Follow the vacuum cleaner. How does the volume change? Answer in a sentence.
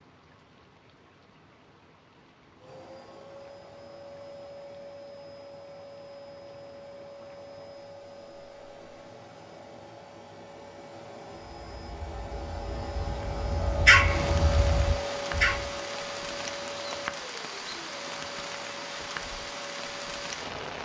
The volume of the vacuum cleaner goes up, then down.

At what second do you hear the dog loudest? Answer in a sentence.
The volume of the dog peaks at 14 seconds.